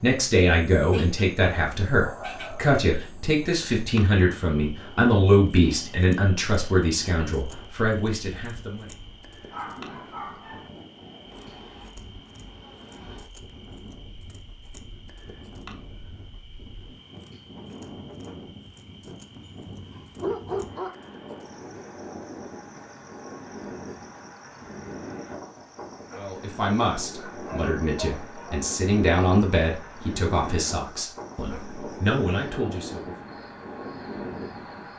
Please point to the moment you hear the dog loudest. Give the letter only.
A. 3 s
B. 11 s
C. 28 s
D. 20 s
D.